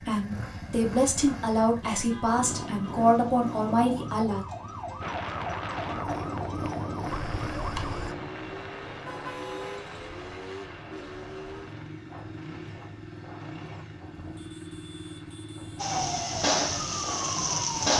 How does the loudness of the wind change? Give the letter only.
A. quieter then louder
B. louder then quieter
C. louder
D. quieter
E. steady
A.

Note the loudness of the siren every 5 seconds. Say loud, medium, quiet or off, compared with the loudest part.
quiet, medium, off, loud.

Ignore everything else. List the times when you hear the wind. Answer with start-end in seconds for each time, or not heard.
5.0-17.9.